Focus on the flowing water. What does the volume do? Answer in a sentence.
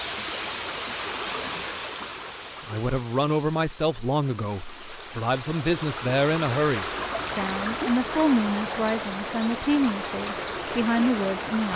The volume of the flowing water goes down, then up.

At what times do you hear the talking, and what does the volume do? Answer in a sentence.
You can hear the talking from 2.6 to 11.7 s, at a steady volume.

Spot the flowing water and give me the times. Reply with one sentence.
You can hear the flowing water from 0.0 to 11.7 s.